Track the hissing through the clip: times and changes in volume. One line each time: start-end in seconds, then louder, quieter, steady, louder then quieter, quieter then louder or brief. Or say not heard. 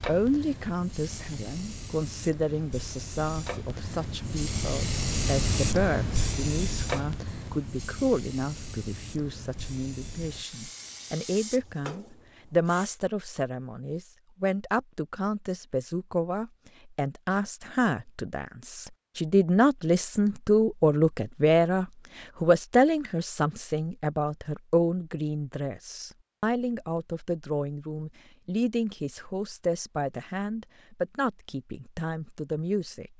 0.0-13.0 louder then quieter.